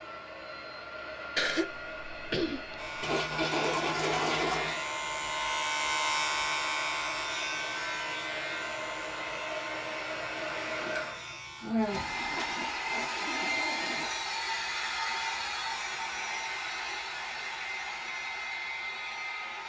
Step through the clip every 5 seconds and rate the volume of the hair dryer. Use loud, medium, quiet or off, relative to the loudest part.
medium, medium, loud, loud.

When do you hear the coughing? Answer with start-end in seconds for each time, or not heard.
1.4-3.1.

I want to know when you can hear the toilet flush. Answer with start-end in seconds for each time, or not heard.
3.0-4.8, 11.9-14.2.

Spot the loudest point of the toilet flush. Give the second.
4 s.